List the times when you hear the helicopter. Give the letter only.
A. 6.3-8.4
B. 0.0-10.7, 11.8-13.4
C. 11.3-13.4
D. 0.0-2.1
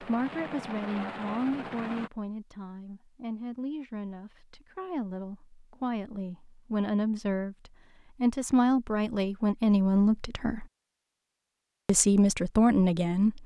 D.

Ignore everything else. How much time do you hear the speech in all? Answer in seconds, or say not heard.
12 s.